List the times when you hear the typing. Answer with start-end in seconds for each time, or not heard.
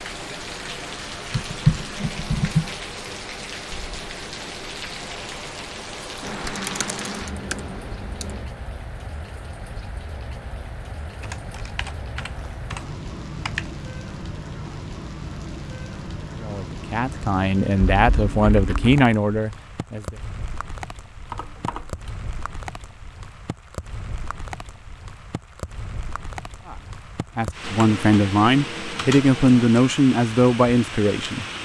1.3-2.7, 6.2-8.4, 11.2-13.7, 17.8-19.0, 21.2-22.1, 27.6-29.6.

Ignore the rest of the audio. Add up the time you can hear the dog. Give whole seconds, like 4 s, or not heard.
not heard.